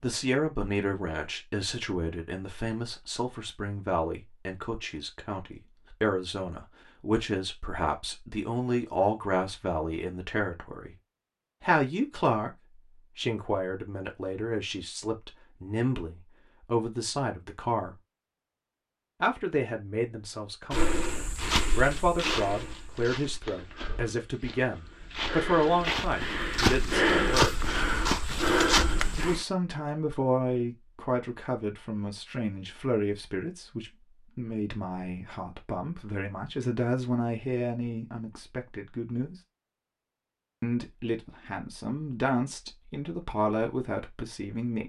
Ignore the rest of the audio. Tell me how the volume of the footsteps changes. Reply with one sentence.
The volume of the footsteps goes down, then up.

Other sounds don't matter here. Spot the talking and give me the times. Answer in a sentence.
The talking can be heard from 0.0 to 10.9 s, from 11.6 to 17.9 s, from 19.2 to 27.6 s, from 29.1 to 39.4 s and from 40.6 to 44.8 s.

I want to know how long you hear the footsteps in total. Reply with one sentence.
The footsteps can be heard for 9 seconds in total.